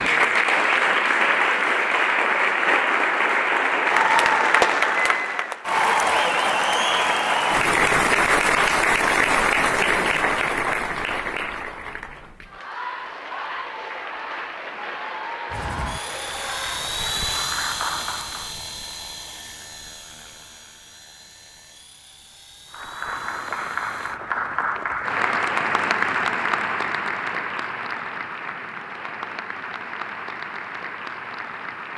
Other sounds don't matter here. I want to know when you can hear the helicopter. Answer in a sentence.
You can hear the helicopter from 15.4 to 24.2 s.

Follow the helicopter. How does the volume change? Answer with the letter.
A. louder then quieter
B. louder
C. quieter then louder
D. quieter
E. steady
D.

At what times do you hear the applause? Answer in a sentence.
You can hear the applause from 0.0 to 18.6 s and from 22.7 to 31.9 s.